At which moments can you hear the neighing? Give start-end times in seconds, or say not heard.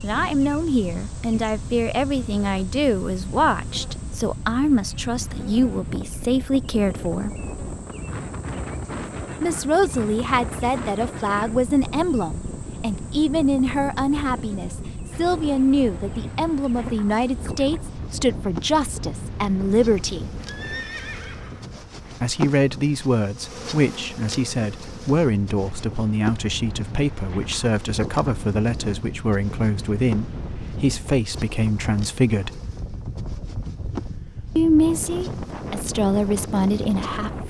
20.4-21.7.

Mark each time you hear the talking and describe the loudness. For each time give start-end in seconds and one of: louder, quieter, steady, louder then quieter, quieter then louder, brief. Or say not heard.
0.0-7.3 steady
9.4-20.2 steady
22.2-32.6 steady
34.5-37.4 brief.